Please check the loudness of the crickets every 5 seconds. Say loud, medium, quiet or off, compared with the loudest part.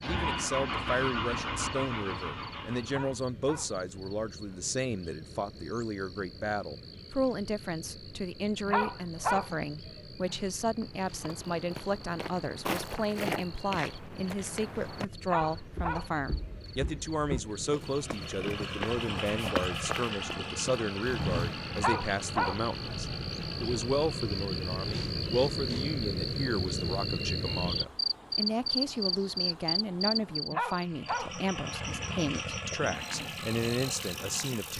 quiet, quiet, quiet, quiet, medium, loud, medium.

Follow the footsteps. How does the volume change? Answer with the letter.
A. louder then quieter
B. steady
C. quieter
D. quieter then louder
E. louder
D.